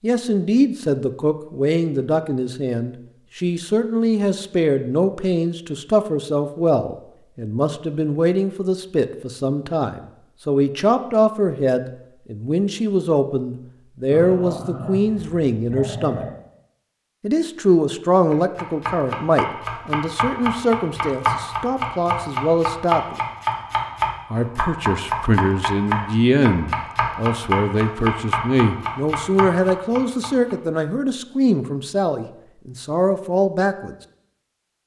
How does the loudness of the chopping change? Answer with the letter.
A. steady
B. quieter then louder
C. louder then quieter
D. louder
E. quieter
A.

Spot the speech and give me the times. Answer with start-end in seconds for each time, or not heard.
0.0-16.2, 17.2-23.2, 24.3-34.0.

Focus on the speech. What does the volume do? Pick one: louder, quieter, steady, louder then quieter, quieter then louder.
steady.